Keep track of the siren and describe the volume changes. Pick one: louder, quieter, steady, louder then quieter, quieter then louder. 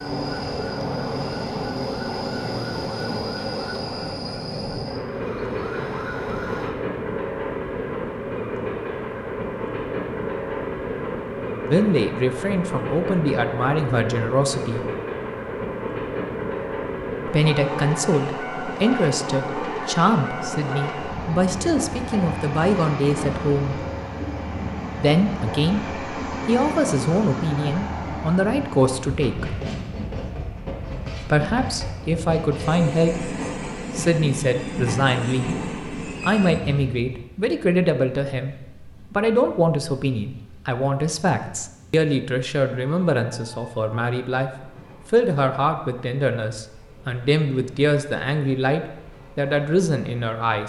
quieter then louder.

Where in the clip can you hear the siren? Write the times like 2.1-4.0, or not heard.
0.0-6.8.